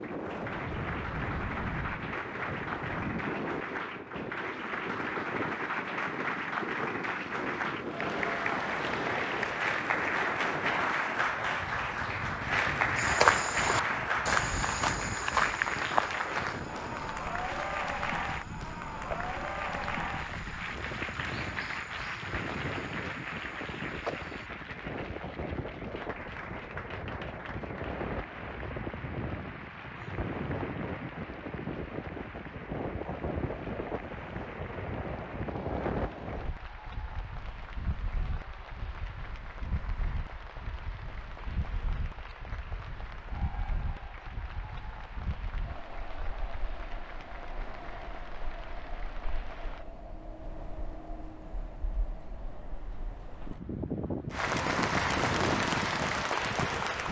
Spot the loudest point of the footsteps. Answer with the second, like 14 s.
13 s.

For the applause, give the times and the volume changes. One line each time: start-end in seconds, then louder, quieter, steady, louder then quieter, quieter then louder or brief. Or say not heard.
0.0-49.9 quieter
54.3-57.0 brief.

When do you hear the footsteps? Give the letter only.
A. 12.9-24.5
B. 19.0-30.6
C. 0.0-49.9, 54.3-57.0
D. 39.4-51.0
A.